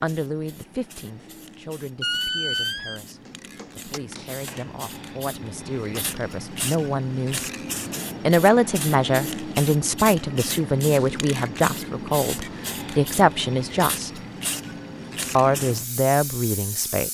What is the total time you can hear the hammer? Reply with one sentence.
You can hear the hammer for 2 seconds altogether.